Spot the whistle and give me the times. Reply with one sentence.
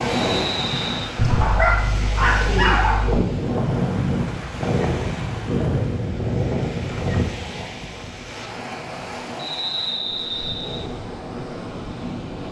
You can hear the whistle from 0.1 to 1.1 s and from 9.3 to 10.9 s.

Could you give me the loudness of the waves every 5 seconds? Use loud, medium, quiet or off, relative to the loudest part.
loud, loud, medium.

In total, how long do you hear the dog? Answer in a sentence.
You can hear the dog for 2 seconds altogether.